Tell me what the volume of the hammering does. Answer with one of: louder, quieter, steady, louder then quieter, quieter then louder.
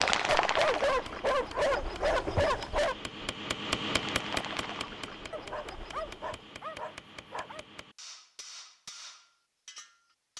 louder then quieter.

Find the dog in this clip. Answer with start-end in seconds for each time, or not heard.
0.2-3.0, 5.3-7.7.